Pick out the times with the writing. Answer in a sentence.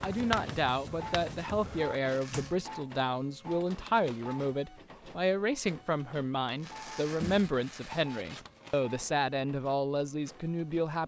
The writing can be heard from 0.0 to 2.0 s.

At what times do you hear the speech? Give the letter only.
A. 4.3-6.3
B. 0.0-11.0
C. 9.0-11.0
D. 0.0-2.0
B.